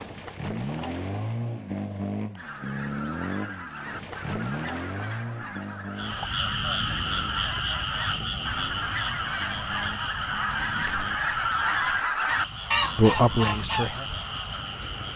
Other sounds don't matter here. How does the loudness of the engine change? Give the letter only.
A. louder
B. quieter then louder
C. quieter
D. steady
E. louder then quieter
C.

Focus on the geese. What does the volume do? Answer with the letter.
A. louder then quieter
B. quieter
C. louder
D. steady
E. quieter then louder
C.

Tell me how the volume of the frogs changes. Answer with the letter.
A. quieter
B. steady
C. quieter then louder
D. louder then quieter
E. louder
A.